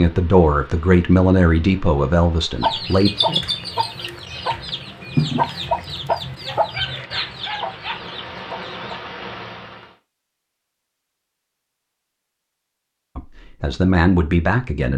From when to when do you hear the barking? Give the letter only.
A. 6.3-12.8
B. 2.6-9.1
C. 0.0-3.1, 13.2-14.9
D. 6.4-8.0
D.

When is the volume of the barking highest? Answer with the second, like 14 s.
7 s.